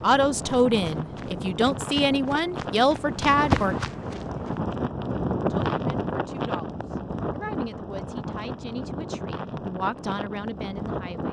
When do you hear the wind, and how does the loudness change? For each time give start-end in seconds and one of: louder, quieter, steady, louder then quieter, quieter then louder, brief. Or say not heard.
0.0-11.2 louder then quieter.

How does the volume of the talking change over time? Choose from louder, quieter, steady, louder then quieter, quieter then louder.
quieter then louder.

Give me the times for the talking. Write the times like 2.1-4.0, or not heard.
0.0-3.8, 5.5-11.2.